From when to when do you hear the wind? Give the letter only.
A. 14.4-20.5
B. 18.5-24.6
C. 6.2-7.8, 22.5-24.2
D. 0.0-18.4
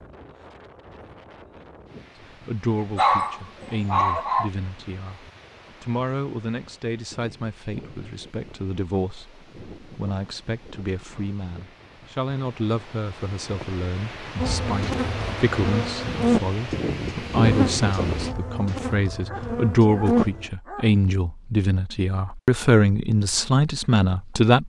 D.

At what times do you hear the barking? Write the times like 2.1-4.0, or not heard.
3.0-4.5, 19.2-21.0.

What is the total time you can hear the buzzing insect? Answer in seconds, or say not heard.
6 s.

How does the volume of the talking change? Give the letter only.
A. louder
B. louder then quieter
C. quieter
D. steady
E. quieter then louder
A.